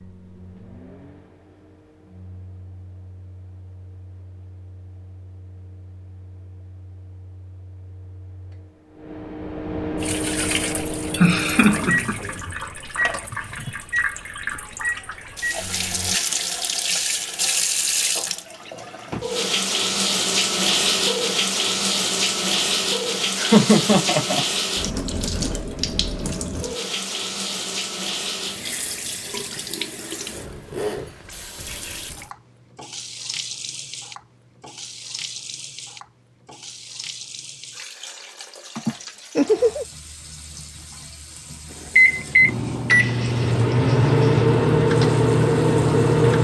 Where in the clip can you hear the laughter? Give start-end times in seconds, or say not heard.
11.2-12.2, 23.4-24.4, 38.8-39.9.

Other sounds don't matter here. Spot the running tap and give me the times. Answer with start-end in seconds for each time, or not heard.
9.9-46.3.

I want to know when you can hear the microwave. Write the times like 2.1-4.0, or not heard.
0.0-16.2, 42.0-46.3.